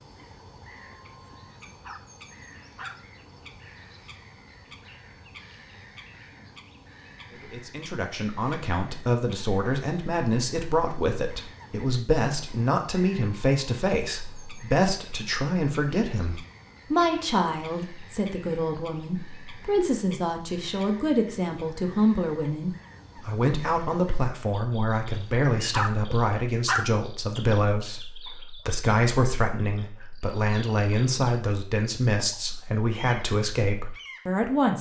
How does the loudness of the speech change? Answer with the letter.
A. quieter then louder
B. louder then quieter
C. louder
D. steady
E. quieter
D.